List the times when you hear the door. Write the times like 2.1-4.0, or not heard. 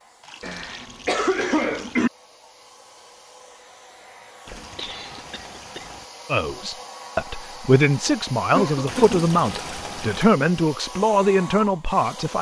not heard.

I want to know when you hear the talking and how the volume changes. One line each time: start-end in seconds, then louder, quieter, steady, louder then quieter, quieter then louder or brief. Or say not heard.
6.3-12.3 steady.